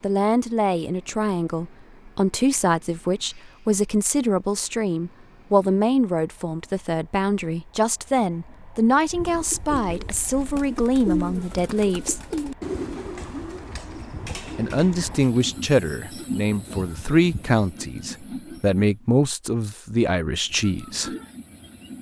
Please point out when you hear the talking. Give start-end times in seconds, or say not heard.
0.0-12.2, 14.6-21.1.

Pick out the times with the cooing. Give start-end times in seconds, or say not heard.
9.1-17.6.